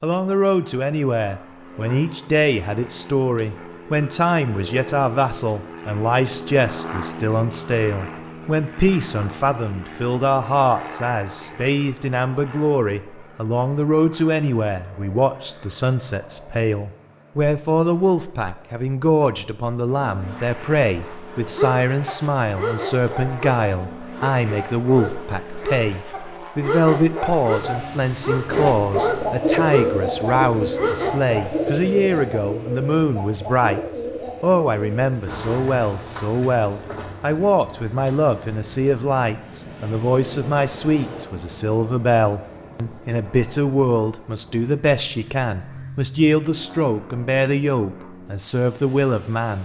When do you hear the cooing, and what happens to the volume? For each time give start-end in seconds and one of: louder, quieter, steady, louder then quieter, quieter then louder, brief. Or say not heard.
28.4-38.9 quieter.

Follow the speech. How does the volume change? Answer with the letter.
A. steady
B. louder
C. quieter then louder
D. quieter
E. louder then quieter
A.